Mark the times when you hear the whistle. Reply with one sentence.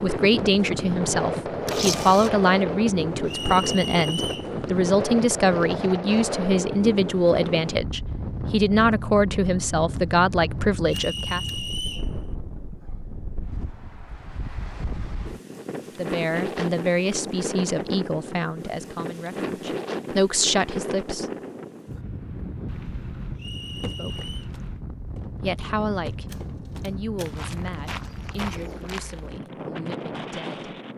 You can hear the whistle from 3.2 to 4.5 s, from 10.8 to 12.1 s and from 23.4 to 24.5 s.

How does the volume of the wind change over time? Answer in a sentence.
The loudness of the wind goes down.